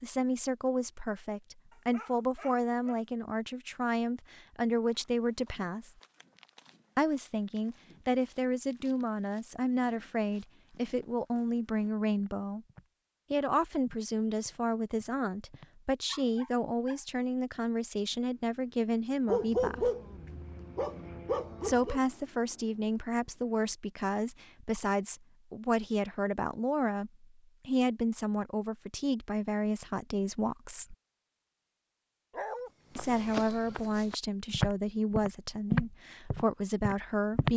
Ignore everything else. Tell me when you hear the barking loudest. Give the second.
20 s.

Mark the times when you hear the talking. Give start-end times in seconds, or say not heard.
0.0-6.0, 7.0-12.7, 13.3-19.9, 21.6-30.9, 33.0-37.5.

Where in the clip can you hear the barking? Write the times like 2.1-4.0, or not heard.
1.7-3.0, 16.1-17.0, 19.2-22.0, 32.3-32.7.